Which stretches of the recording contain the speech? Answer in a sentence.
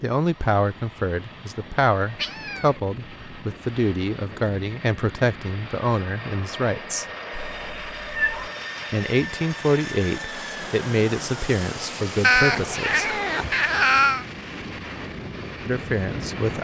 You can hear the speech from 0.0 to 7.0 s, from 8.9 to 13.1 s and from 15.7 to 16.5 s.